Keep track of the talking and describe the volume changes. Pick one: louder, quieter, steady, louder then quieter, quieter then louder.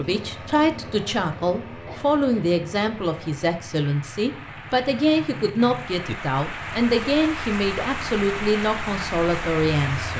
steady.